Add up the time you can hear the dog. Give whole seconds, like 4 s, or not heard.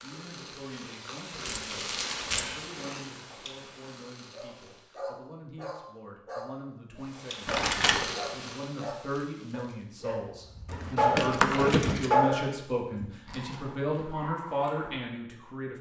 11 s.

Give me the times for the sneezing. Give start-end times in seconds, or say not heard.
not heard.